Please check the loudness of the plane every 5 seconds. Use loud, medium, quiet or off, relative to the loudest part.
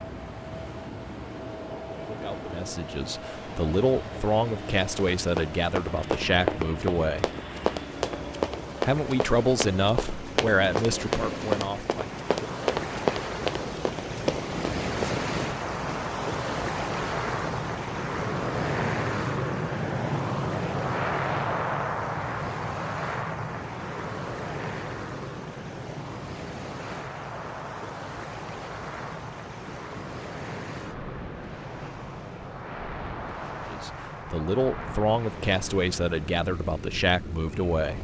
medium, medium, medium, loud, loud, medium, medium, medium.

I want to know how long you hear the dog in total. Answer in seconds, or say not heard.
not heard.